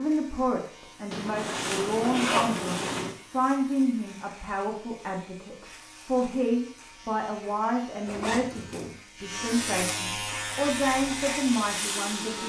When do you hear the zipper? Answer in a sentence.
You can hear the zipper from 1.1 to 3.1 s and from 8.1 to 8.9 s.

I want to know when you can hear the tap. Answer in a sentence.
You can hear the tap from 10.5 to 12.4 s.